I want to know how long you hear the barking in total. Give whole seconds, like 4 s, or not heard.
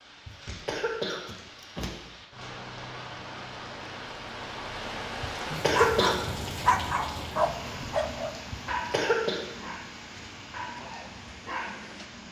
6 s.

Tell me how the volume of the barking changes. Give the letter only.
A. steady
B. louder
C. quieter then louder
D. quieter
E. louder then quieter
C.